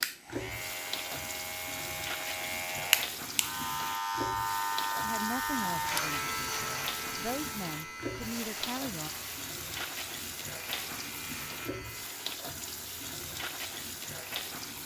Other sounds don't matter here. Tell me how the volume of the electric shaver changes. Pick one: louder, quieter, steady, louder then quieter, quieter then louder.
louder then quieter.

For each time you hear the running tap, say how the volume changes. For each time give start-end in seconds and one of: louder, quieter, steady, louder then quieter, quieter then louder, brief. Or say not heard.
0.0-14.8 steady.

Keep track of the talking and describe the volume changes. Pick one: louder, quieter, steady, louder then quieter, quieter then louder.
quieter then louder.